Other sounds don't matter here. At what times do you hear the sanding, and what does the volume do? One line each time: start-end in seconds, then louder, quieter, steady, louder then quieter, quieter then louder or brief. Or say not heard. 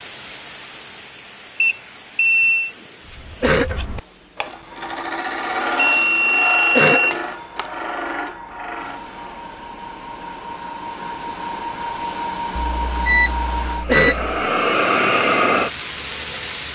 3.0-9.4 louder then quieter.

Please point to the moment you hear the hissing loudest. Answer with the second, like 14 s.
15 s.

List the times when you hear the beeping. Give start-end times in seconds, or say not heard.
1.6-2.7, 5.8-7.7, 12.6-14.3.